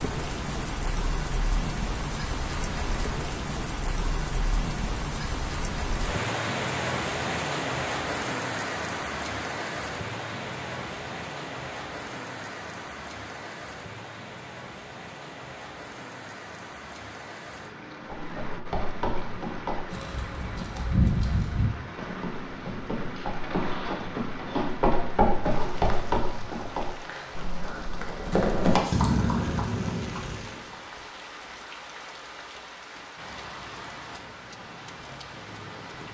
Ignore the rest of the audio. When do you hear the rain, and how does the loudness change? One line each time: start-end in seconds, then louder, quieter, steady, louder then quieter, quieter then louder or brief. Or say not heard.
0.0-36.0 quieter.